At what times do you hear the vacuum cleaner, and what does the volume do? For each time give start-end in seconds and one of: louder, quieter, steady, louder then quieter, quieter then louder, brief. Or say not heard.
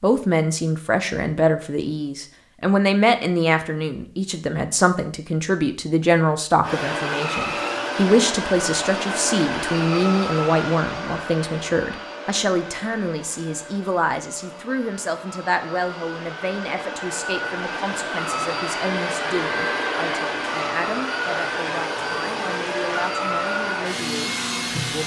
6.6-25.0 quieter then louder.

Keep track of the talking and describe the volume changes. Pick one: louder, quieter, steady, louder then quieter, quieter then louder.
quieter.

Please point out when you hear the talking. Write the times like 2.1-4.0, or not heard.
0.0-25.0.